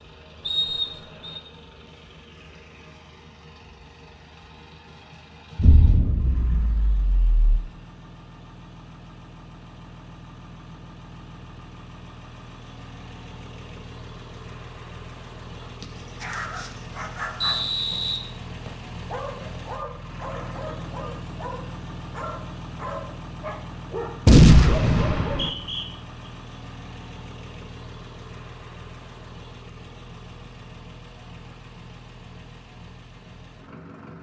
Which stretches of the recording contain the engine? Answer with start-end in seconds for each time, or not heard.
0.0-34.1.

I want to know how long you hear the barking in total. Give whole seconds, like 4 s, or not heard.
9 s.